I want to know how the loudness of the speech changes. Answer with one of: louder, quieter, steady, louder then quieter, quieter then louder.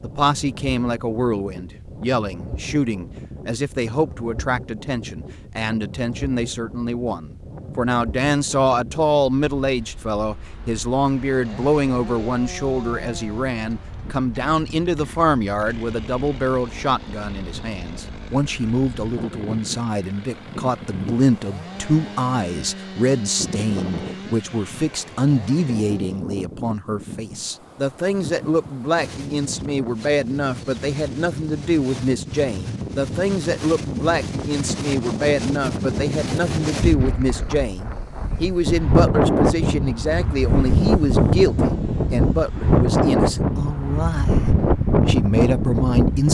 steady.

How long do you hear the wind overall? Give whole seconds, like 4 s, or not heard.
46 s.